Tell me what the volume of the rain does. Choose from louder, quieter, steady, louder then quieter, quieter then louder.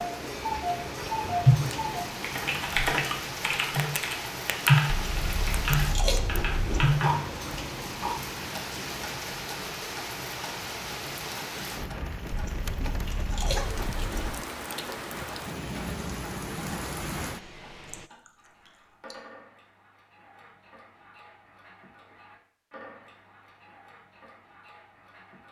steady.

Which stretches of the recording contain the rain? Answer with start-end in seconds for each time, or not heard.
0.0-18.1.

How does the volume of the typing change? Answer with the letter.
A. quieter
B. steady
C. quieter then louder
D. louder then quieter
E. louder
D.